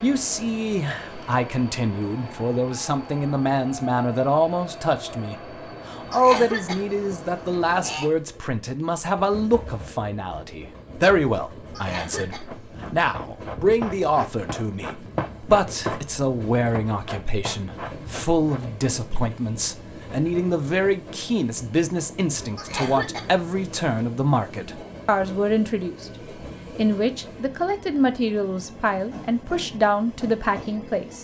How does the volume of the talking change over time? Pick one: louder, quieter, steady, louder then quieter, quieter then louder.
steady.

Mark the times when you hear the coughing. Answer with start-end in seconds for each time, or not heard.
6.1-8.1, 11.7-12.8, 22.6-24.1.